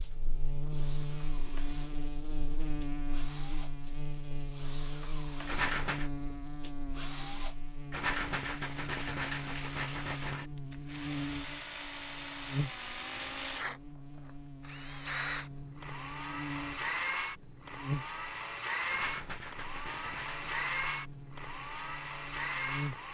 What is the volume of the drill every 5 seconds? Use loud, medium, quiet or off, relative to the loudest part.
quiet, medium, loud, loud, loud.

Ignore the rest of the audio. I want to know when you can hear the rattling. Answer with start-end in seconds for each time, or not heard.
5.5-6.1, 7.9-10.4, 18.9-20.6.